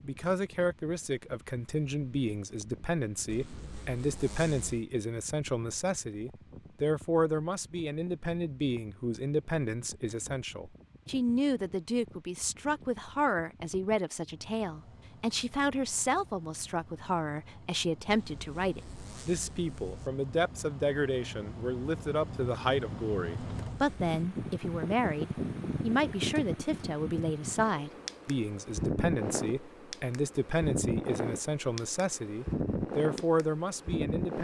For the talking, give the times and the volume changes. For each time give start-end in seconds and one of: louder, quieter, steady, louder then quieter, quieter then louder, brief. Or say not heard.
0.0-34.3 steady.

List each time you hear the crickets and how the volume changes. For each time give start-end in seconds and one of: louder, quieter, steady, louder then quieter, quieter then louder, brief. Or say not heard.
not heard.